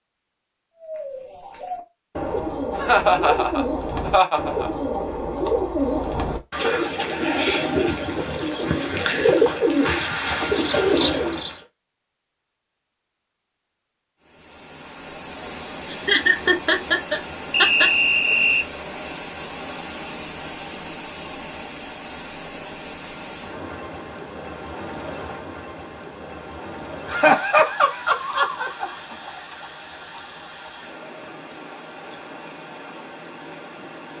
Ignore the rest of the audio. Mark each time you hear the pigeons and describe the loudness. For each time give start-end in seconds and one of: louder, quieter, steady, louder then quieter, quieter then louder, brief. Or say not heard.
0.8-11.6 louder.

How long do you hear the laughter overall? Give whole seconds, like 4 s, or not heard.
6 s.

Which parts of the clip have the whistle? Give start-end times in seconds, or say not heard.
17.5-18.6.